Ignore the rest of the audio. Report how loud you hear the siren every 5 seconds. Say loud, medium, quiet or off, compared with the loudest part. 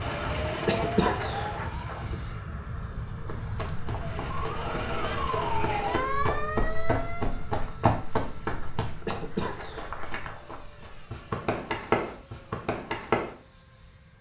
loud, loud, off.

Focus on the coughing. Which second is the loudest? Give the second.
1 s.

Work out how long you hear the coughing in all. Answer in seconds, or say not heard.
4 s.